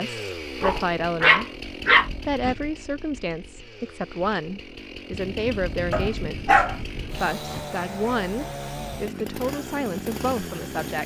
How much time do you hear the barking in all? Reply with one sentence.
You can hear the barking for 4 seconds altogether.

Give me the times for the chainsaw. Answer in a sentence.
The chainsaw can be heard from 0.0 to 11.0 s.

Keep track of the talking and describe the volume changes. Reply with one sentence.
The volume of the talking stays about the same.